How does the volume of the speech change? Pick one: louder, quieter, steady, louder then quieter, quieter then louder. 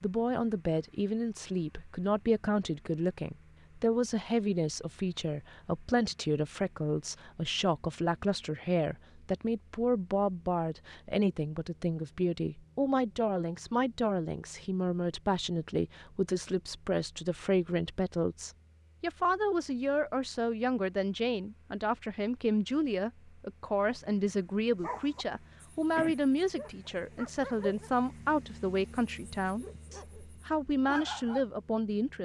steady.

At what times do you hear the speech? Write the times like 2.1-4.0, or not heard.
0.0-32.1.